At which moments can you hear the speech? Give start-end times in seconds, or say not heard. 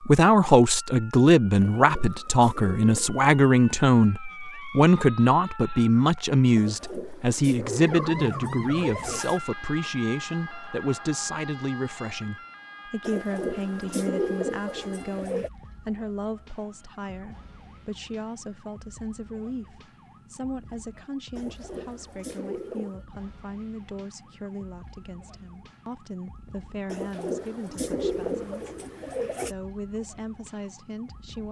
0.0-31.4.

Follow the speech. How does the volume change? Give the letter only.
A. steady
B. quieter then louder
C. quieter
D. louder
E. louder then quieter
C.